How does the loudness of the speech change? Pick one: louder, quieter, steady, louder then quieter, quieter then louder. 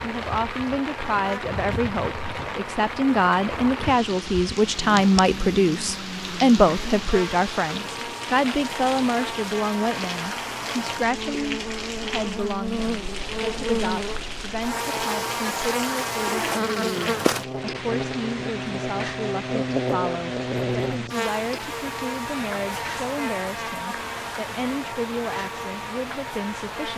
quieter.